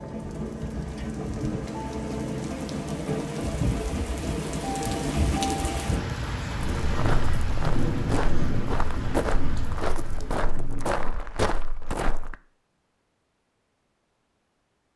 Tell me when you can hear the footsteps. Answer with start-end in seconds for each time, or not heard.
6.8-12.3.